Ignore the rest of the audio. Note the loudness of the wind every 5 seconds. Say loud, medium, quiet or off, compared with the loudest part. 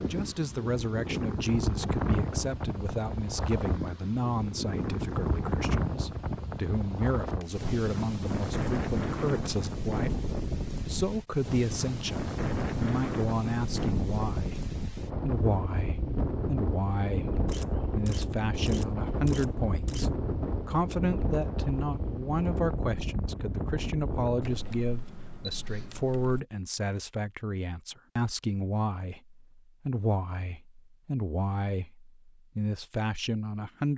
loud, loud, loud, loud, loud, off, off.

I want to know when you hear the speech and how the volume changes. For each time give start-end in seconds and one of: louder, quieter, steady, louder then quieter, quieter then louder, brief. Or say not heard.
0.1-33.9 steady.